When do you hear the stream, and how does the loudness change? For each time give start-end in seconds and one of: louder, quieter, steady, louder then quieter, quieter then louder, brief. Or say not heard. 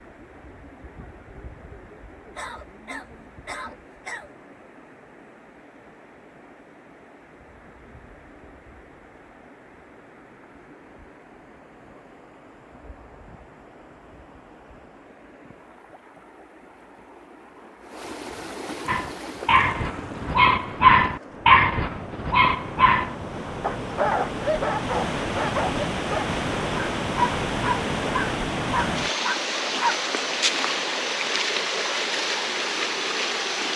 0.0-33.7 louder.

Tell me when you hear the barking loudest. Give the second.
21 s.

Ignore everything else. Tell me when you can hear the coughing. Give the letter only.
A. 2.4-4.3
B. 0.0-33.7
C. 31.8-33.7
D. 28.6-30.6
A.